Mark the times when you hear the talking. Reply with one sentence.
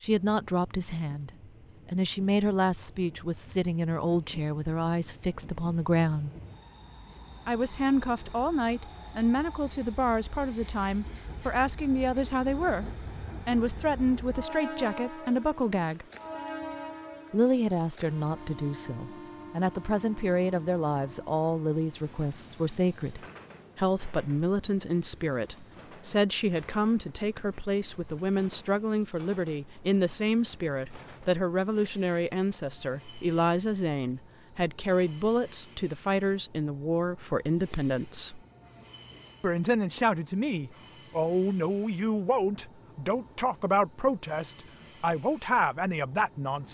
The talking can be heard from 0.0 to 6.3 s, from 7.5 to 16.1 s, from 17.3 to 38.4 s and from 39.4 to 46.6 s.